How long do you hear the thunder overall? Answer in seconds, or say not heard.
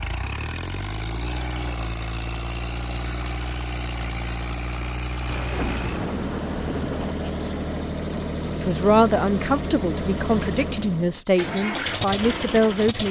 2 s.